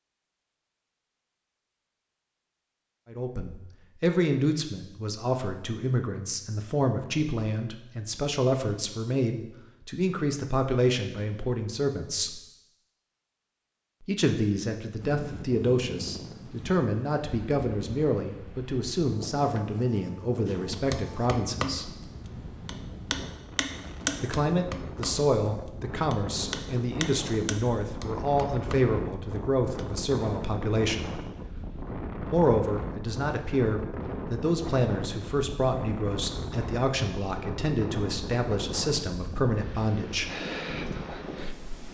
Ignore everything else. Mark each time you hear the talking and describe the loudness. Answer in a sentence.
The talking can be heard from 3.0 to 12.4 s, at a steady volume; from 14.0 to 21.9 s, at a steady volume; from 24.2 to 31.1 s, at a steady volume; and from 32.2 to 40.3 s, at a steady volume.